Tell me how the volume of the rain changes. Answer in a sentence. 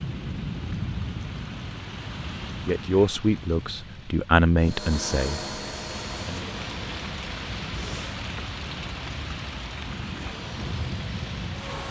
The loudness of the rain goes down, then up.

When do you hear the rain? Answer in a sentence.
The rain can be heard from 0.0 to 11.8 s.